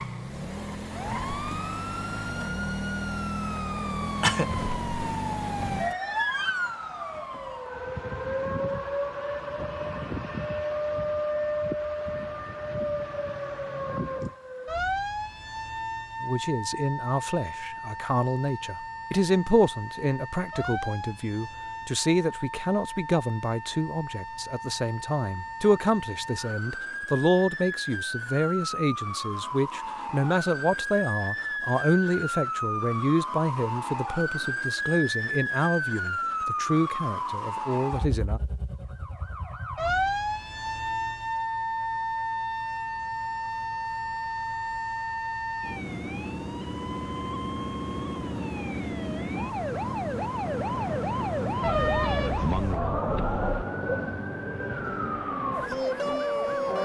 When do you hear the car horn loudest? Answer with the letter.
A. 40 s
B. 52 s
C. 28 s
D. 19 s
B.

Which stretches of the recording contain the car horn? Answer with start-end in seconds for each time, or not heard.
51.6-53.6.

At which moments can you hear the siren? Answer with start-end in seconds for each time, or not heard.
0.0-56.7.